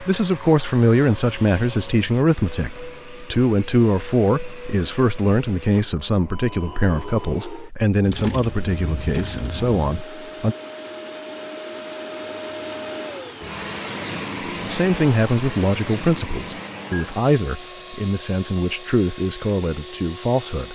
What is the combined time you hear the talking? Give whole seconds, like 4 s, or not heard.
17 s.